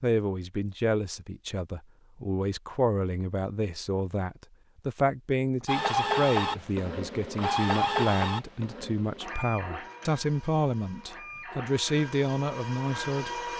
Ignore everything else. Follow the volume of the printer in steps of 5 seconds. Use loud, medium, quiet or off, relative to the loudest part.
off, loud, medium.